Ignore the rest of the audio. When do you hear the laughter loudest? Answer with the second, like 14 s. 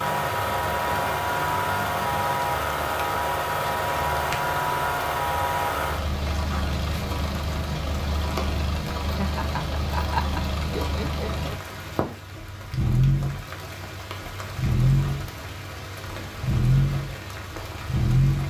10 s.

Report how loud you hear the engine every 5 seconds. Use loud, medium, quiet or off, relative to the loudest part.
loud, medium, loud, loud.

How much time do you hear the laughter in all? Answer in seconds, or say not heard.
3 s.